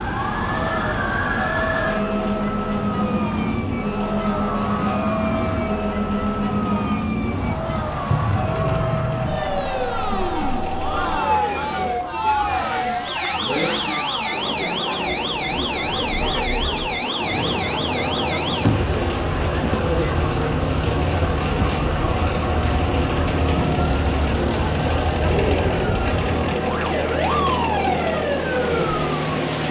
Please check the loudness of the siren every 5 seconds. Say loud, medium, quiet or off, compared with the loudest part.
loud, loud, loud, loud, medium, loud.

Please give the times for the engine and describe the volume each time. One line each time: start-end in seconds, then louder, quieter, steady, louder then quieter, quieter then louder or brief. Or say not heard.
0.2-29.6 louder.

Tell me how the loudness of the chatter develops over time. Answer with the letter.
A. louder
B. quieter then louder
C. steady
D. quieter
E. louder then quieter
C.